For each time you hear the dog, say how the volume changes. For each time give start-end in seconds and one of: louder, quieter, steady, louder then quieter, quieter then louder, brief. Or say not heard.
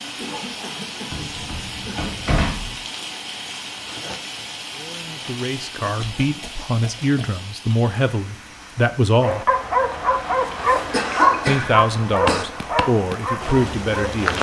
9.2-14.2 quieter.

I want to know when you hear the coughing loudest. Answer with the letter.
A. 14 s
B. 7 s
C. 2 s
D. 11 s
D.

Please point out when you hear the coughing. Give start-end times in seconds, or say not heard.
0.2-2.1, 6.2-7.2, 10.5-12.4.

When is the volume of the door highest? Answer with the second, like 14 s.
2 s.